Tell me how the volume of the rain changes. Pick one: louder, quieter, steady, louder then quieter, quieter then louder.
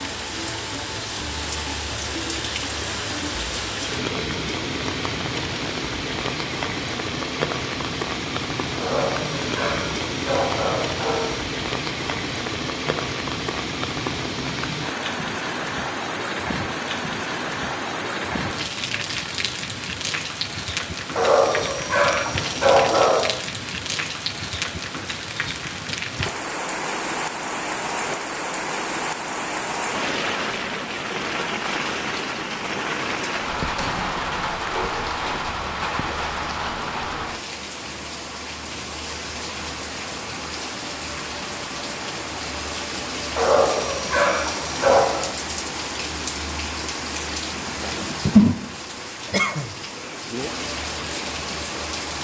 steady.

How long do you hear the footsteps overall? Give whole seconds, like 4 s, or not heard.
not heard.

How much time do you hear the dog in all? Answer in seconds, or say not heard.
7 s.